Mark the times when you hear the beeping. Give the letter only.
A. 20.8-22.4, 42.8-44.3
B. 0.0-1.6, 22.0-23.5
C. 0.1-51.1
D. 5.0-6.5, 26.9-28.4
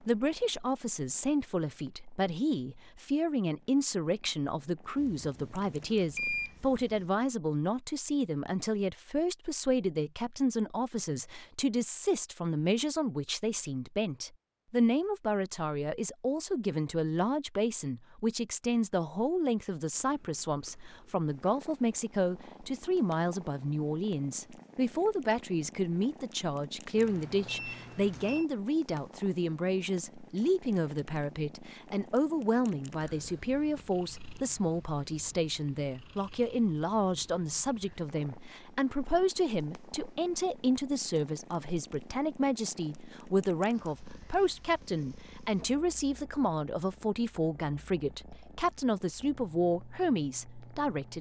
D.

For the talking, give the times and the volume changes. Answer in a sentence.
The talking can be heard from 0.1 to 51.1 s, at a steady volume.